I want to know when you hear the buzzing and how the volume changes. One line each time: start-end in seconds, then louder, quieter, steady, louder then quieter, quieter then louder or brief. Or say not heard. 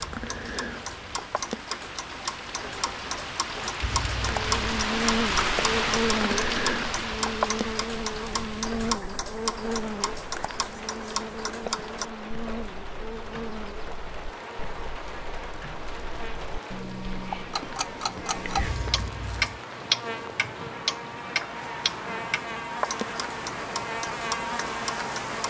4.1-25.4 quieter then louder.